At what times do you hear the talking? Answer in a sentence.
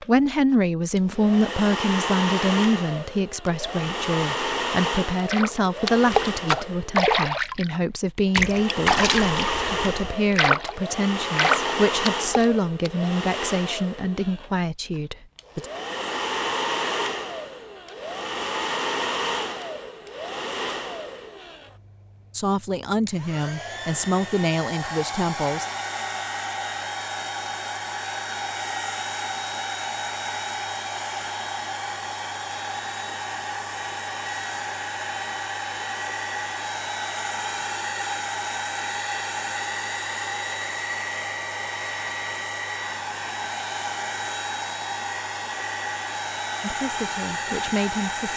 You can hear the talking from 0.0 to 15.7 s, from 22.3 to 25.6 s and from 46.6 to 48.3 s.